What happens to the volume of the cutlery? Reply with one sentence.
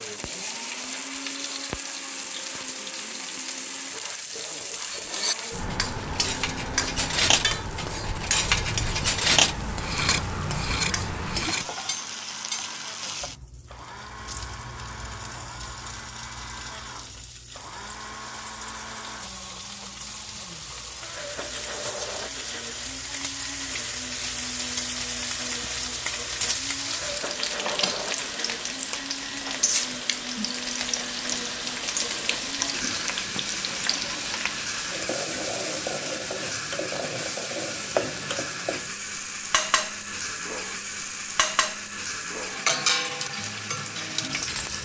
The loudness of the cutlery goes up, then down.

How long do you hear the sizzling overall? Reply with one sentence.
The sizzling can be heard for 45 seconds in total.